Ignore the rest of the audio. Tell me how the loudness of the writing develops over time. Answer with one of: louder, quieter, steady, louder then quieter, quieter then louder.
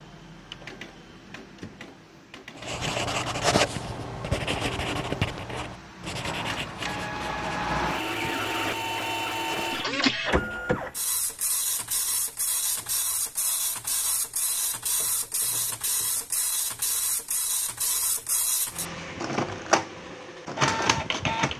quieter.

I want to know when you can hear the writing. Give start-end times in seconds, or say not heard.
2.5-10.7.